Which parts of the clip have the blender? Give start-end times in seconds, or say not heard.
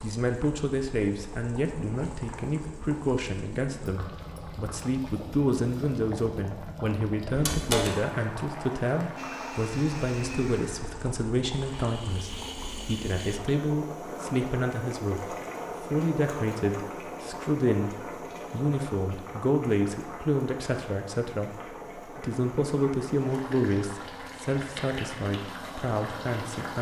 9.2-13.4.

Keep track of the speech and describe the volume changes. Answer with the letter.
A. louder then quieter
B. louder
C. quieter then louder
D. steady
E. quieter
D.